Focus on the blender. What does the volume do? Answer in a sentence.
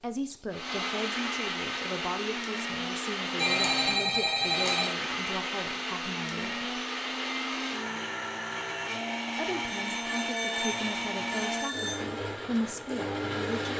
The volume of the blender stays about the same.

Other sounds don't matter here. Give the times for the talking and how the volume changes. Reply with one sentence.
The talking can be heard from 0.0 to 6.8 s, at a steady volume; and from 9.2 to 13.7 s, getting louder.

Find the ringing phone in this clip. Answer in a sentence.
You can hear the ringing phone from 3.4 to 4.9 s and from 9.6 to 12.1 s.